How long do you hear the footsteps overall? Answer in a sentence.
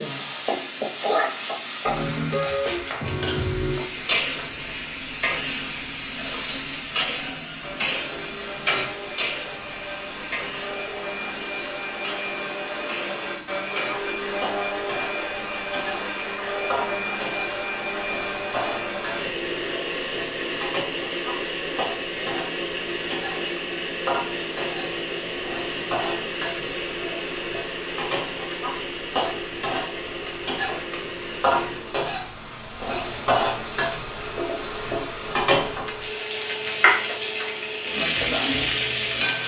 You can't hear the footsteps here.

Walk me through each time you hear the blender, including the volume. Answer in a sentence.
You can hear the blender from 0.0 to 39.4 s, getting louder then quieter.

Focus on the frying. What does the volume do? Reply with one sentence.
The loudness of the frying goes down, then up.